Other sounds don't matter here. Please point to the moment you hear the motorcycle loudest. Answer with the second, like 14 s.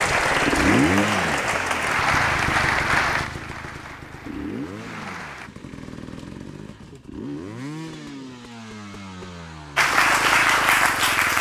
1 s.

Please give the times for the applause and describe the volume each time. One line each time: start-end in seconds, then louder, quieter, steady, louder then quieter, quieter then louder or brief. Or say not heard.
0.0-5.5 quieter
9.8-11.3 brief.